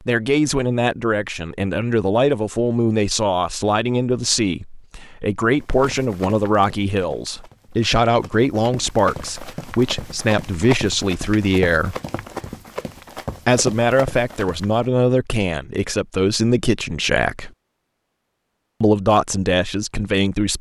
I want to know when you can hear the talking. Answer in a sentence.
You can hear the talking from 0.1 to 11.9 s, from 13.4 to 17.5 s and from 18.8 to 20.5 s.